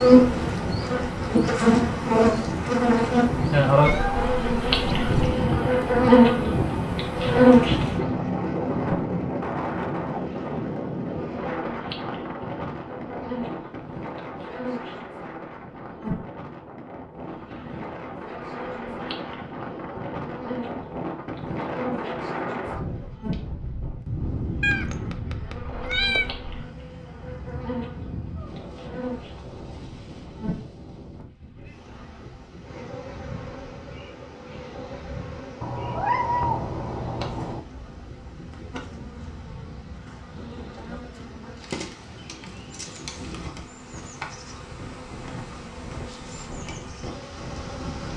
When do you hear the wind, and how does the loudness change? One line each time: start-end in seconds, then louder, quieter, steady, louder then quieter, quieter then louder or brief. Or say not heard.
0.0-48.1 quieter.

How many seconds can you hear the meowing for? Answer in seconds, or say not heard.
5 s.